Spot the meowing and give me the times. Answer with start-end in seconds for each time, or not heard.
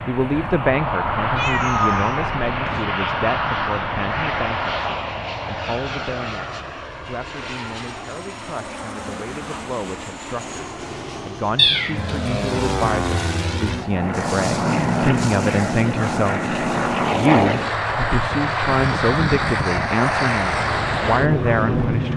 1.4-2.9, 11.6-12.9.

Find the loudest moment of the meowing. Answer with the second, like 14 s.
12 s.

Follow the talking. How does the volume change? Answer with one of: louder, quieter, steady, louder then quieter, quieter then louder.
quieter then louder.